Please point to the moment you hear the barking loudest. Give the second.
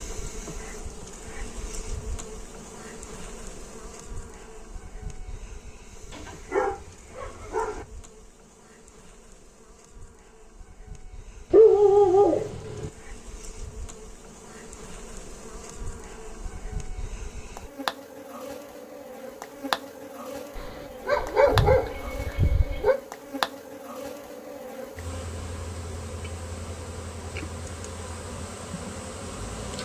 12 s.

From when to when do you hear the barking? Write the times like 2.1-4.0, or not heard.
6.1-7.8, 11.5-12.9, 20.6-22.9.